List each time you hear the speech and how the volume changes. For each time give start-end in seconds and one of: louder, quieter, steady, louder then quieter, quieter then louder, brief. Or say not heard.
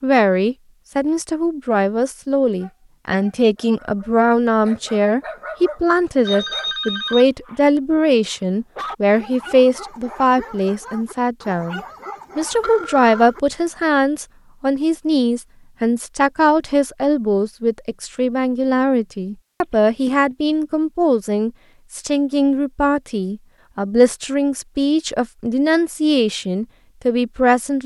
0.0-27.8 steady.